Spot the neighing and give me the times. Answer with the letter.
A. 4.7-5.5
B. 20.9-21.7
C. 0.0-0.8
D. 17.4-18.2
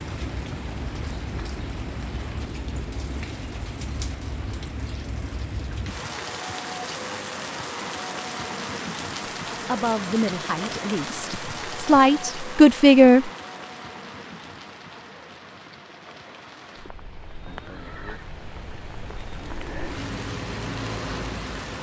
D.